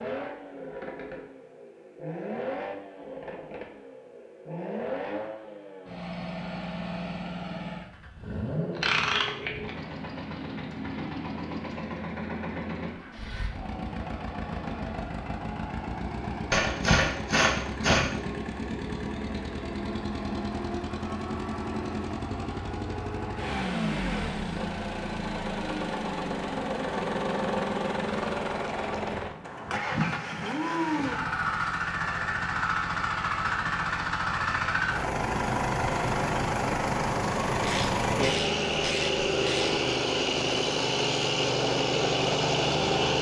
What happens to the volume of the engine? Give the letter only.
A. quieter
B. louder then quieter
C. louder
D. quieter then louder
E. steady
C.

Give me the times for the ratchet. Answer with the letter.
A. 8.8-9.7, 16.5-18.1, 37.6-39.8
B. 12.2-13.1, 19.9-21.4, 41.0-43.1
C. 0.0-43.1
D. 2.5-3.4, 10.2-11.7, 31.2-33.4
A.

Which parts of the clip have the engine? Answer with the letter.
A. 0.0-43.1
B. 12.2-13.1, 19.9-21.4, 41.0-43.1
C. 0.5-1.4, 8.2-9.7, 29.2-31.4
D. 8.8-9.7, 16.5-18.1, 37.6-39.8
A.